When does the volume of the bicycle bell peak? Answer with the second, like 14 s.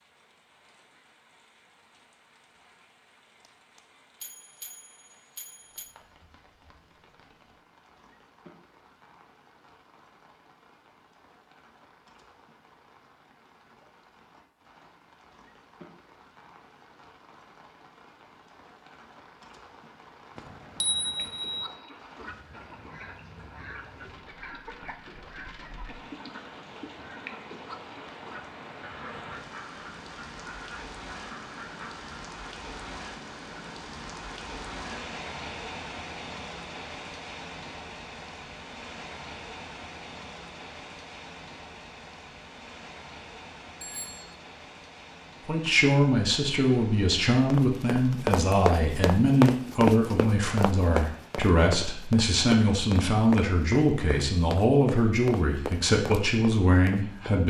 21 s.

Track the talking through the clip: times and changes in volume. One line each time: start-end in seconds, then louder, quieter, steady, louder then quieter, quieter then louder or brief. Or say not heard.
45.5-57.4 steady.